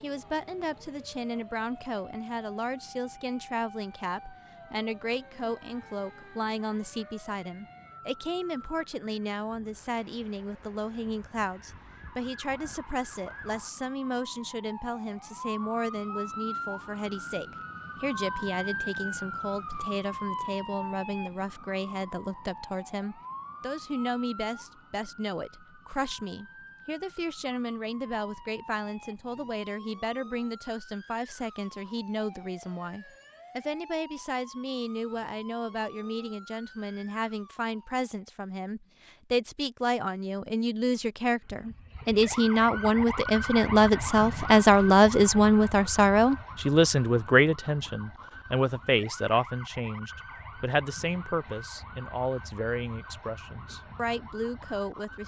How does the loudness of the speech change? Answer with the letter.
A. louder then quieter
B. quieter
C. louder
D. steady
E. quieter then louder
C.